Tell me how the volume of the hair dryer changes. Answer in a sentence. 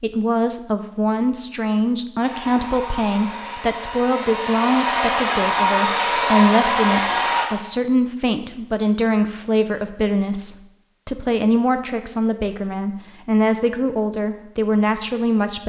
The loudness of the hair dryer goes up.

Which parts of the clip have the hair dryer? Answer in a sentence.
You can hear the hair dryer from 2.2 to 7.5 s.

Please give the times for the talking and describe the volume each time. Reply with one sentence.
You can hear the talking from 0.0 to 15.6 s, at a steady volume.